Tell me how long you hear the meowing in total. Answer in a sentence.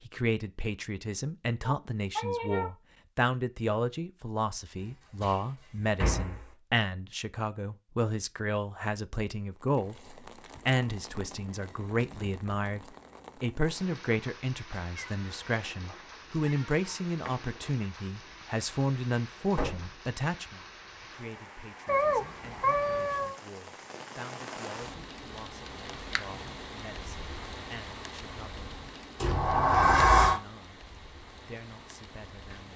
The meowing can be heard for 5 seconds in total.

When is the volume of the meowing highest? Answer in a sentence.
The loudest moment of the meowing is at 22 seconds.